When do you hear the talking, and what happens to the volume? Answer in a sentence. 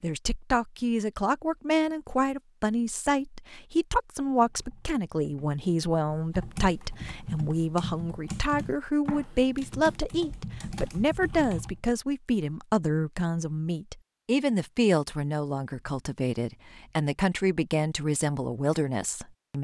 The talking can be heard from 0.0 to 19.5 s, at a steady volume.